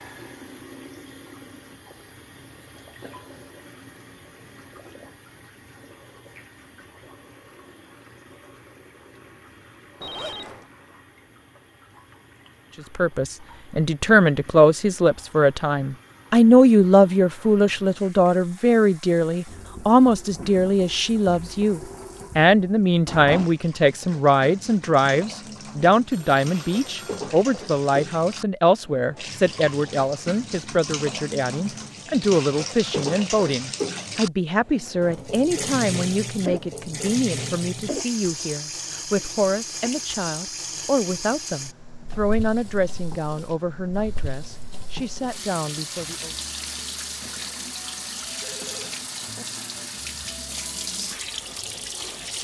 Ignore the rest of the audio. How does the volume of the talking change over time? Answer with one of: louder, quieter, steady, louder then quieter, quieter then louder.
quieter.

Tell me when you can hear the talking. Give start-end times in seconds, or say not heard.
12.9-46.4.